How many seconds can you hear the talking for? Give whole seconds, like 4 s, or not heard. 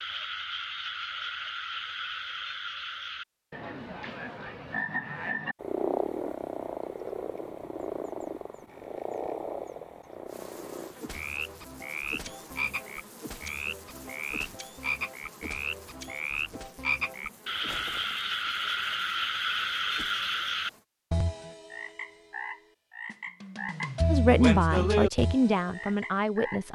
3 s.